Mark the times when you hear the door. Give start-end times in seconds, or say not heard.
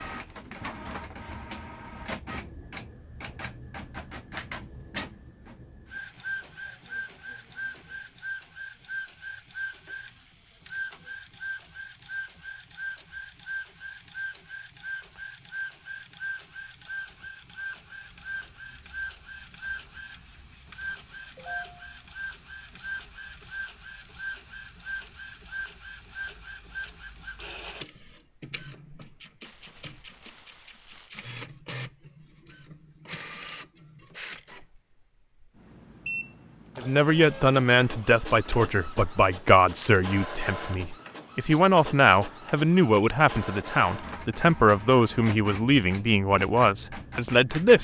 not heard.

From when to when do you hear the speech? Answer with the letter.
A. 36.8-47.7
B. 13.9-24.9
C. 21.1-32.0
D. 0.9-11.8
A.